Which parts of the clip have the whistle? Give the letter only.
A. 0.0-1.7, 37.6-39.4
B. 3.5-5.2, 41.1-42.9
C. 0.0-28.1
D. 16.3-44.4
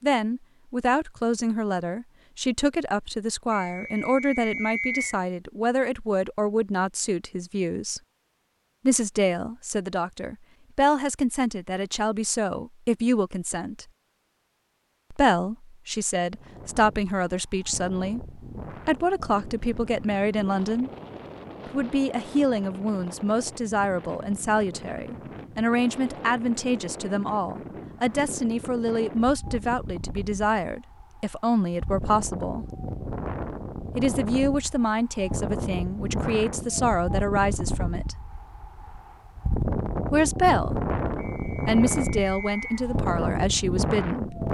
B.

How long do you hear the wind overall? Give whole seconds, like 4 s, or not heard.
28 s.